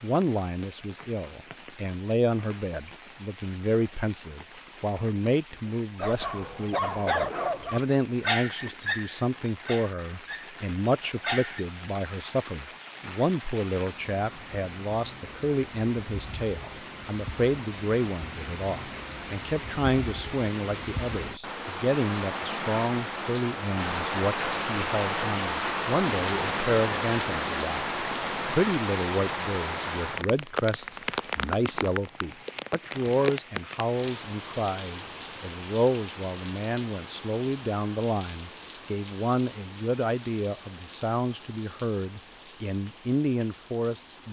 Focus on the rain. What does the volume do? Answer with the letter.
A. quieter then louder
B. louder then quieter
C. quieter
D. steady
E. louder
B.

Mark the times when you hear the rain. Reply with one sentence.
You can hear the rain from 0.0 to 44.2 s.